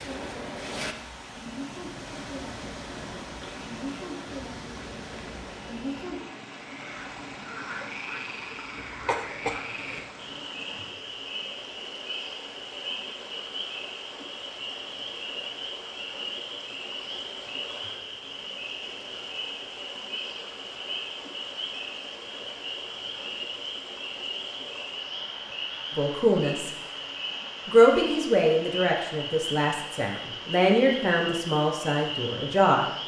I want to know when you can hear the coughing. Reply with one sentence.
The coughing can be heard from 9.1 to 10.1 s.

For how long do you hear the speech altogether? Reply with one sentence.
The speech can be heard for 6 seconds in total.